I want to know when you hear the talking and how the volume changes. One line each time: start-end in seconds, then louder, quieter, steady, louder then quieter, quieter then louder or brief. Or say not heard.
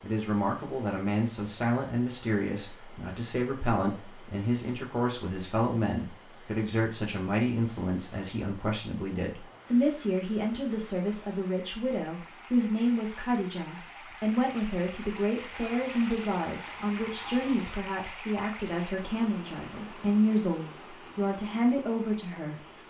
0.0-22.6 steady.